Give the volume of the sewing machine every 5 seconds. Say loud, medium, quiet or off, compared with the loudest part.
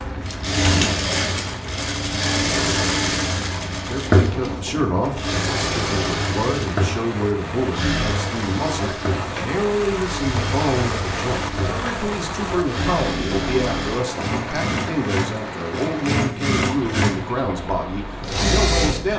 loud, loud, medium, loud.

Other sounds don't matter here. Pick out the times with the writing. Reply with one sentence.
The writing can't be heard in this clip.